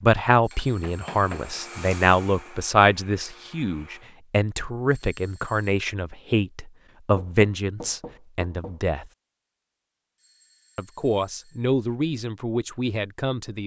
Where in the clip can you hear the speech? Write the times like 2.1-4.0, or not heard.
0.0-9.1, 10.8-13.6.